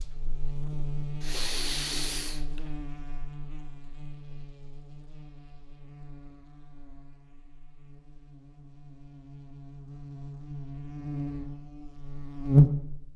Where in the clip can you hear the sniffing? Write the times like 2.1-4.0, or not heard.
1.2-2.7.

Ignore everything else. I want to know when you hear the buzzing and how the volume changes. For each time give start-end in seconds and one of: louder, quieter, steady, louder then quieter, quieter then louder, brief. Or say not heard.
0.0-13.1 quieter then louder.